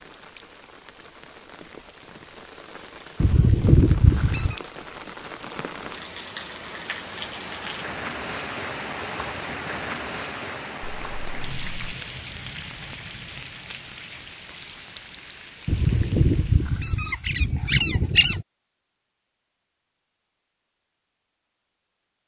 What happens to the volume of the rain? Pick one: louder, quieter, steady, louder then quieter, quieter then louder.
louder then quieter.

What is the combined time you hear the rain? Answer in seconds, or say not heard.
17 s.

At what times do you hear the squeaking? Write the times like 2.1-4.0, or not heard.
3.2-4.5, 10.8-11.8, 15.7-18.4.